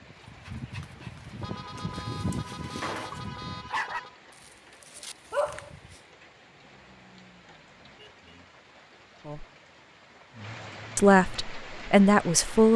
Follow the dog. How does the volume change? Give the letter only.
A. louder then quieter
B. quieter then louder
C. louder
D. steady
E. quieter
C.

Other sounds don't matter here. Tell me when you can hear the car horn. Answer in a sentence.
You can hear the car horn from 1.4 to 4.2 s and from 6.6 to 8.3 s.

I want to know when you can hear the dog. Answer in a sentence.
You can hear the dog from 0.5 to 5.8 s.